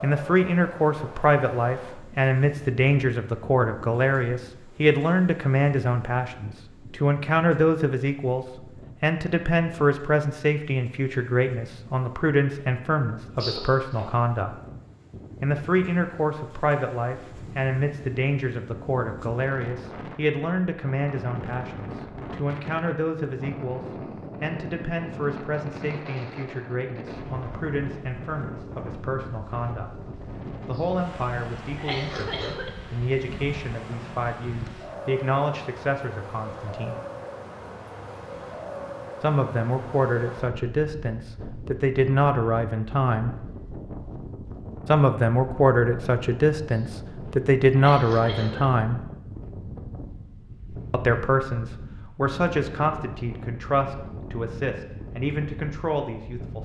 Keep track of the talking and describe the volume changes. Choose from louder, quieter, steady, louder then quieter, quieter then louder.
quieter then louder.